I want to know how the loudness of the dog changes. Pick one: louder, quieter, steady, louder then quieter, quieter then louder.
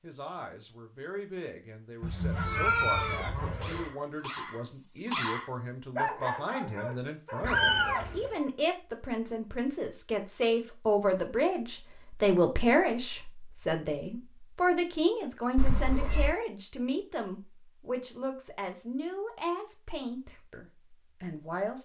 louder then quieter.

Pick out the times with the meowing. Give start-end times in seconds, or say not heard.
2.0-3.9, 7.4-8.3, 15.6-16.4.